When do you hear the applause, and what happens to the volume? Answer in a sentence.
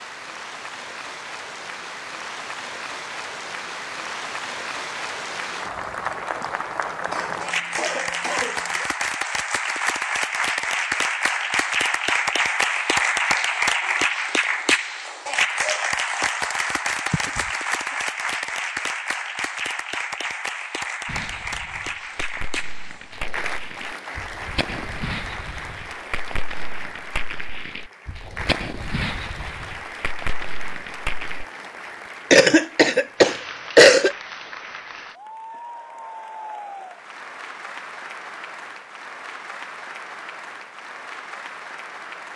The applause can be heard from 0.0 to 42.3 s, getting louder then quieter.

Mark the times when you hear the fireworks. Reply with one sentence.
The fireworks can be heard from 21.1 to 31.4 s.